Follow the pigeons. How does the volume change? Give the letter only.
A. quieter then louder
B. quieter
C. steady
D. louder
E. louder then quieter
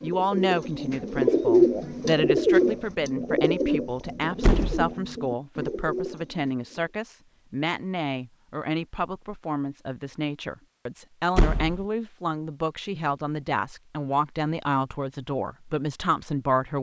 B.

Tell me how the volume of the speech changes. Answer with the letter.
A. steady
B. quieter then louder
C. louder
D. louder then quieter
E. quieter
A.